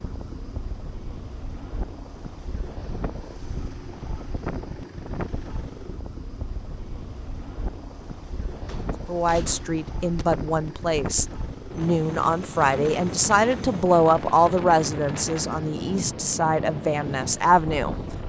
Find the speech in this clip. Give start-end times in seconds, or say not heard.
9.1-17.9.